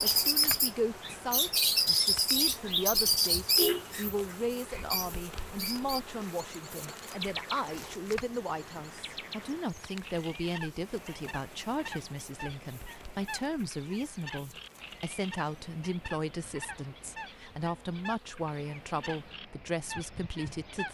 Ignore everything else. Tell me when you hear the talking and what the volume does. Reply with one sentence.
The talking can be heard from 0.1 to 20.8 s, at a steady volume.